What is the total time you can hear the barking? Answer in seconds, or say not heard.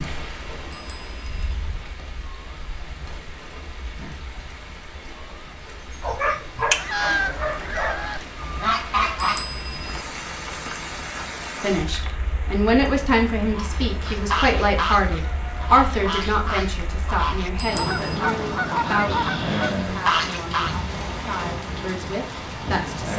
2 s.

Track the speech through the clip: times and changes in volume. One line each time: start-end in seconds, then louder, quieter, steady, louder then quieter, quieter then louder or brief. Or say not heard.
11.6-23.1 quieter.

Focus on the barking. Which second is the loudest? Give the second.
7 s.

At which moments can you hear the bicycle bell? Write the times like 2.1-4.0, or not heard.
0.7-1.6, 9.2-10.0, 17.6-18.2.